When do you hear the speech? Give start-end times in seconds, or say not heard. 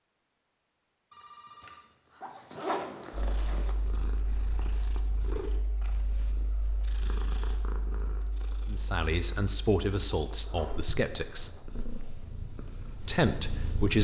8.7-11.5, 13.1-13.9.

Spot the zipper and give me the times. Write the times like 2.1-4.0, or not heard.
2.2-3.8, 10.2-11.6.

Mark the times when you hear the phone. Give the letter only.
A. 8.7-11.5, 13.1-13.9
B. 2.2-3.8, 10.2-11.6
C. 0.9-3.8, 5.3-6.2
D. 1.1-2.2
D.